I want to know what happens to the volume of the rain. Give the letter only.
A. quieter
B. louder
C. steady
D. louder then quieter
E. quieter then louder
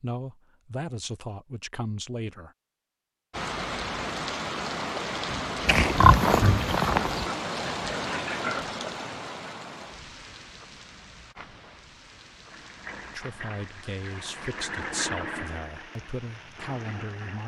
A.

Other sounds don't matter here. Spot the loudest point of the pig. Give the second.
6 s.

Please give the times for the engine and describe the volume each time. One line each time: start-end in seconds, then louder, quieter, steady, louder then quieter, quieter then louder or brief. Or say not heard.
12.5-17.4 louder then quieter.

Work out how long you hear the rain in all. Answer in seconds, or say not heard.
14 s.